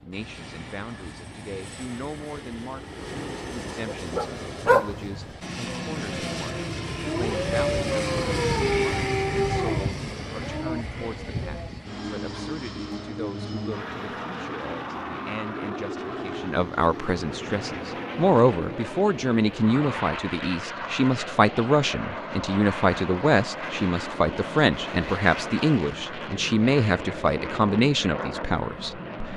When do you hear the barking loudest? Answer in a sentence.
The loudest moment of the barking is at 5 seconds.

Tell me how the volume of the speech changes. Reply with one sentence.
The loudness of the speech goes up.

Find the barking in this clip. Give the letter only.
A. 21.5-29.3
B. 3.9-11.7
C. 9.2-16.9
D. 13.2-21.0
B.